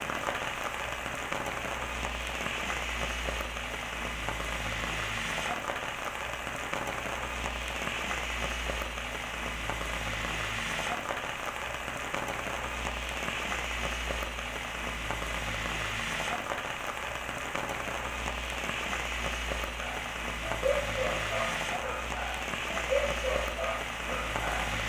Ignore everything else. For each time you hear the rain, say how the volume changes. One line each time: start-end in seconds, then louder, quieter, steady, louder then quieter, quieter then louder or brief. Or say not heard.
0.0-24.8 steady.